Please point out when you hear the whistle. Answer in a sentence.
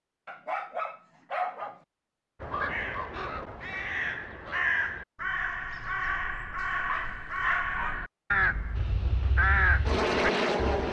The whistle can't be heard in this clip.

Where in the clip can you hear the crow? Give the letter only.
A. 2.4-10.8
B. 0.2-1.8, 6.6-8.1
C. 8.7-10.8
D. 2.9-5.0
A.